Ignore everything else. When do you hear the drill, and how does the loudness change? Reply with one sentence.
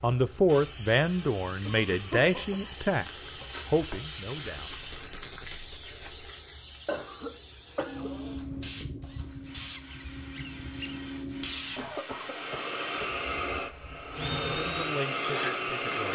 The drill can be heard from 7.6 to 16.1 s, getting louder.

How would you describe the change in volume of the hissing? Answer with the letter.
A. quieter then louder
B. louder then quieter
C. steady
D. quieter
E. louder
E.